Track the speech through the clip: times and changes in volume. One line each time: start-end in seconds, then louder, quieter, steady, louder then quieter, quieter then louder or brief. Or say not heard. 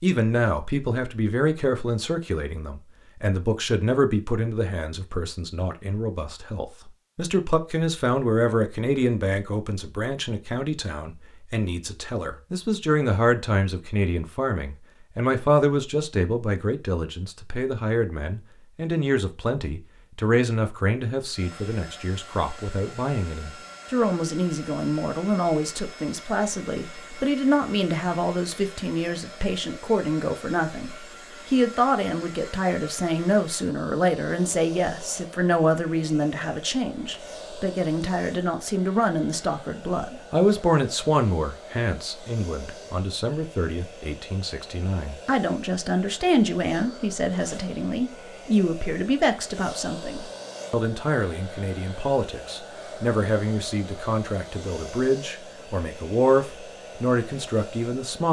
0.0-58.2 steady.